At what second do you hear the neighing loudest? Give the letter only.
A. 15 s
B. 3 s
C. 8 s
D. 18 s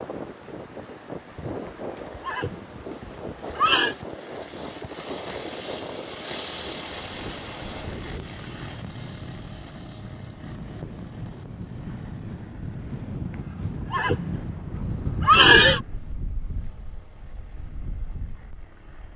A.